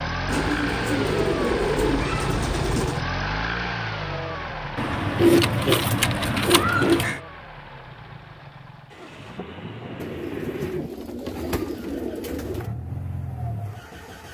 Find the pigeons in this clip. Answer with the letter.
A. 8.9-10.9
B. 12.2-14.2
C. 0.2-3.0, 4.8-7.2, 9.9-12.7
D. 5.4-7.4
C.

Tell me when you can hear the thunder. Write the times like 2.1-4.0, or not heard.
8.9-10.9.